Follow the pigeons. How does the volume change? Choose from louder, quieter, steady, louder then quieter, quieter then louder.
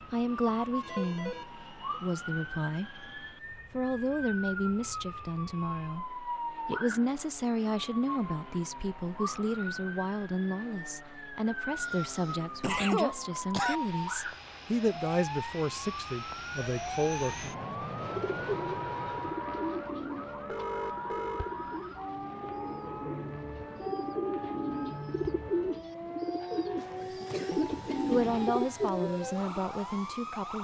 quieter then louder.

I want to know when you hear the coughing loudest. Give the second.
13 s.